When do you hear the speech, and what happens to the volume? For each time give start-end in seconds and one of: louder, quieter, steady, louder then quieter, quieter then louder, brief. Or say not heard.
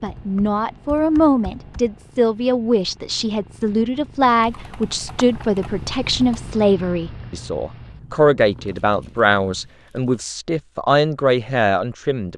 0.0-12.3 steady.